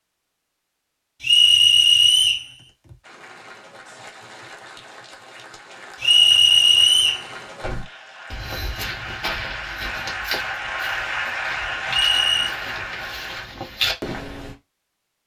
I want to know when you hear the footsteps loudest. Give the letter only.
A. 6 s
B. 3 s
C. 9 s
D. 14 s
D.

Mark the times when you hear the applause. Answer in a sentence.
The applause can be heard from 3.0 to 13.5 s.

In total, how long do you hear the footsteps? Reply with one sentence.
You can hear the footsteps for 7 seconds altogether.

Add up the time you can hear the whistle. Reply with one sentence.
The whistle can be heard for 3 seconds in total.